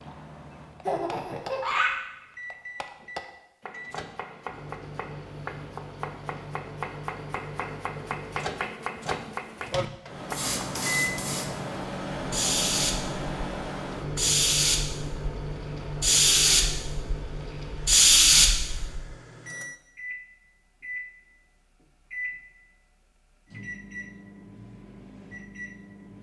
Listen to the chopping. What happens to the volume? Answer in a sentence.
The loudness of the chopping goes up.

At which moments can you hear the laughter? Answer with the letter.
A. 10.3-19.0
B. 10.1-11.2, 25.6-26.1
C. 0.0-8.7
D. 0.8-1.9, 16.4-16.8
D.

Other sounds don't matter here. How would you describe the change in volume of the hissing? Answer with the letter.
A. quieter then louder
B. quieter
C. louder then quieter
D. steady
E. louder
E.